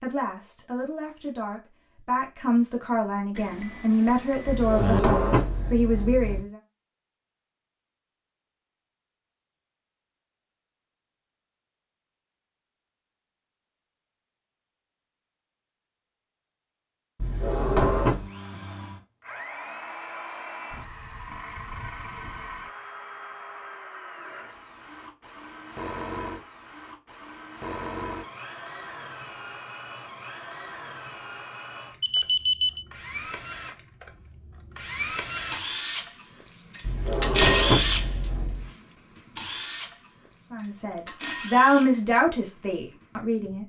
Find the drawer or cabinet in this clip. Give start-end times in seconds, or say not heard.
4.5-6.4, 17.2-18.2, 36.8-38.7.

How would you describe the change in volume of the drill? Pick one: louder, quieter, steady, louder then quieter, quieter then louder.
louder then quieter.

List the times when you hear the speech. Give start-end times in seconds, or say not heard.
0.0-6.5, 40.5-43.6.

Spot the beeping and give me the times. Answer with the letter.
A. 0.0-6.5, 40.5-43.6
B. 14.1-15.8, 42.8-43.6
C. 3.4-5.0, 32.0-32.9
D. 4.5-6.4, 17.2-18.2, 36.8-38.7
C.